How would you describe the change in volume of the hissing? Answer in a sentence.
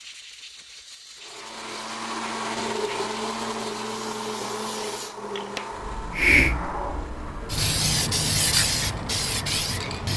The volume of the hissing goes up.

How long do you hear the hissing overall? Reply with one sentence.
You can hear the hissing for 10 seconds altogether.